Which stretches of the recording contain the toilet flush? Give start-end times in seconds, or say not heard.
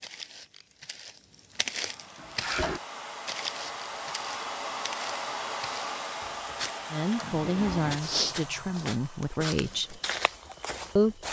2.1-2.8, 7.1-8.0.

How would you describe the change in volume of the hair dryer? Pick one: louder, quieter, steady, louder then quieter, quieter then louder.
louder then quieter.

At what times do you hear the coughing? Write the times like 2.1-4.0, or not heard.
not heard.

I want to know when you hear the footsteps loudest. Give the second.
8 s.